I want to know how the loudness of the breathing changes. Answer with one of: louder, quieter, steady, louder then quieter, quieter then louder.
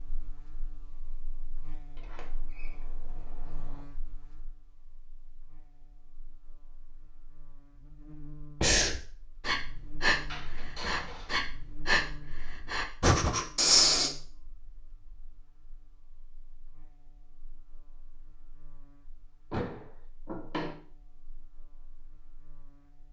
louder.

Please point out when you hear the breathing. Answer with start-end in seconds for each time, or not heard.
8.6-14.1.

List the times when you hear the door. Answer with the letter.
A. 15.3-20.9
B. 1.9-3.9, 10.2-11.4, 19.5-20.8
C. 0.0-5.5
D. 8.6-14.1
B.